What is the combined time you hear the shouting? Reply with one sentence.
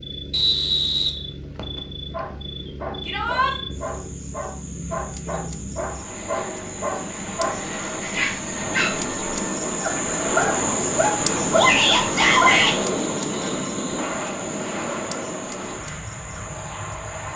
You can hear the shouting for 2 seconds altogether.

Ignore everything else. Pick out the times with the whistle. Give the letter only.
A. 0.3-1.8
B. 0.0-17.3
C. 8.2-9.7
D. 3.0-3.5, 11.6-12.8
A.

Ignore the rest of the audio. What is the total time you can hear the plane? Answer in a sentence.
The plane can be heard for 17 seconds in total.